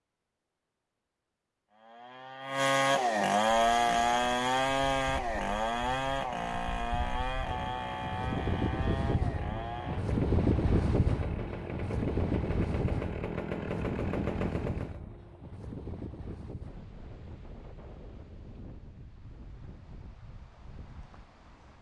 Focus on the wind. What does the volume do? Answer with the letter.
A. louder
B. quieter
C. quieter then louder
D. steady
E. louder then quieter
E.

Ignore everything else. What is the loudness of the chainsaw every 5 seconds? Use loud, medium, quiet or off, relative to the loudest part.
loud, medium, medium, off, off.